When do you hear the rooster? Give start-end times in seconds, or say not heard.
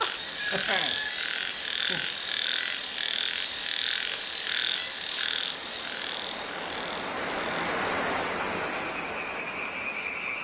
0.2-1.1.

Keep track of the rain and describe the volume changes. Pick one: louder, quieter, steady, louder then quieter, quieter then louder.
louder.